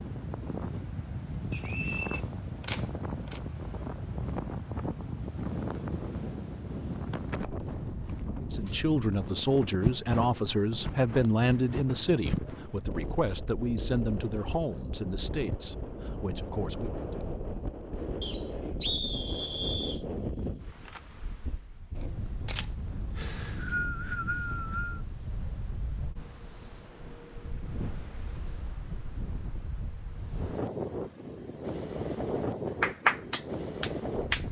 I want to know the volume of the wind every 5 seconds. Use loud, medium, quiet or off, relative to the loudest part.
loud, loud, loud, loud, medium, medium, loud.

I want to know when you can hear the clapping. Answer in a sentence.
The clapping can be heard from 32.8 to 34.4 s.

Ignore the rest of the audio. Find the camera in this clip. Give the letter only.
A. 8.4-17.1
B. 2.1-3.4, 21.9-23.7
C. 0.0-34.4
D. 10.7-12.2
B.